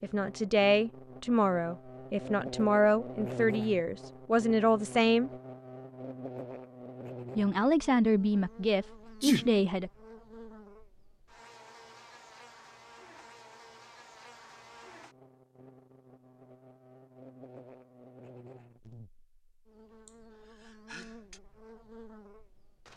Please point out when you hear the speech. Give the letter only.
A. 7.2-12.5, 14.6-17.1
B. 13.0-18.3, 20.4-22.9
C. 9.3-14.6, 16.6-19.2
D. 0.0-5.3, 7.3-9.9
D.